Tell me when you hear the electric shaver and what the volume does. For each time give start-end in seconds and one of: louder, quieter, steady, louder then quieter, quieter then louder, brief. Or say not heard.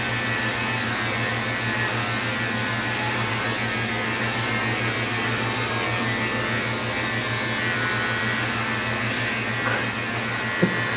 0.0-10.9 steady.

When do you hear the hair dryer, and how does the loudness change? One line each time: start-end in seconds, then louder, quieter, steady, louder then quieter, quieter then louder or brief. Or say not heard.
0.0-10.9 steady.